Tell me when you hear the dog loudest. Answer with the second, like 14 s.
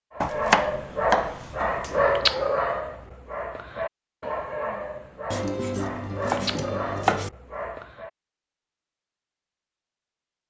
2 s.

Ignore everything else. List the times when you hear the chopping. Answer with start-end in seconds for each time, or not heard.
0.2-2.1, 5.3-7.3.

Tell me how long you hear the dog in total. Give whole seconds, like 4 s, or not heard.
8 s.